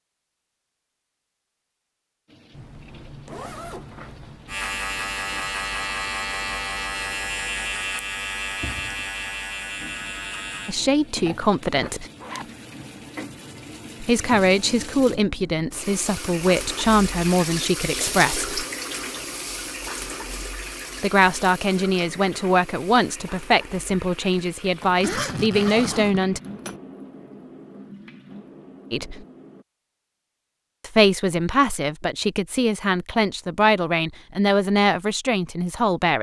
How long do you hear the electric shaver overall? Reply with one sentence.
The electric shaver can be heard for 6 seconds in total.